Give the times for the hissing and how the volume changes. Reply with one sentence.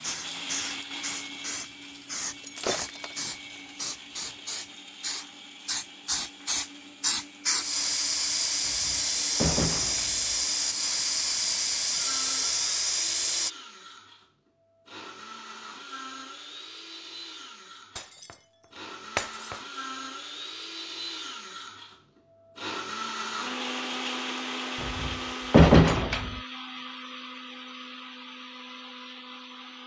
The hissing can be heard from 0.0 to 13.5 s, getting louder.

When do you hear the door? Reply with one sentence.
You can hear the door from 8.7 to 10.3 s and from 24.8 to 26.4 s.